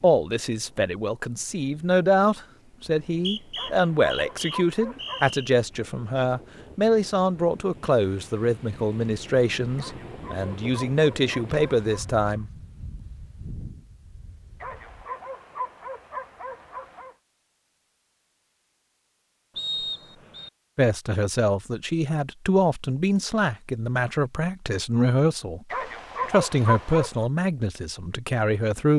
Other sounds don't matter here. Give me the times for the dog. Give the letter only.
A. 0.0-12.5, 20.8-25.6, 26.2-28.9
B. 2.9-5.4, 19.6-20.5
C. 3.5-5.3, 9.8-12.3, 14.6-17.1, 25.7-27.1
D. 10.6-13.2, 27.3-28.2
C.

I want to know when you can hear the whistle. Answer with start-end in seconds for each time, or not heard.
2.9-5.4, 19.6-20.5.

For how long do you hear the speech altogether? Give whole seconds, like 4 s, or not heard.
20 s.